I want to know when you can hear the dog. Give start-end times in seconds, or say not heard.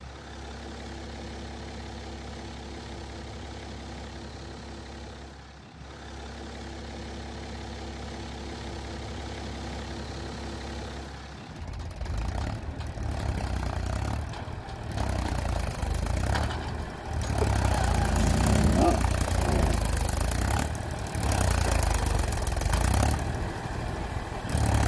17.4-19.8.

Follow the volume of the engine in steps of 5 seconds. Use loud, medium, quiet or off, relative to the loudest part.
medium, medium, medium, loud, loud.